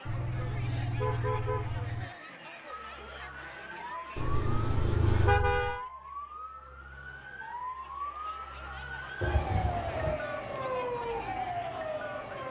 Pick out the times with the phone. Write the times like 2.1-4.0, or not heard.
not heard.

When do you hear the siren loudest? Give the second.
11 s.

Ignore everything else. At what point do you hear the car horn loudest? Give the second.
5 s.